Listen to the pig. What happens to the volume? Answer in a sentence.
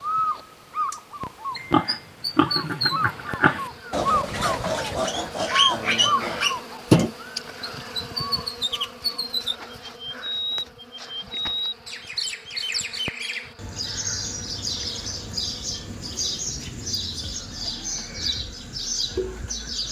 The loudness of the pig goes up.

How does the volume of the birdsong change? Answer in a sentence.
The loudness of the birdsong stays about the same.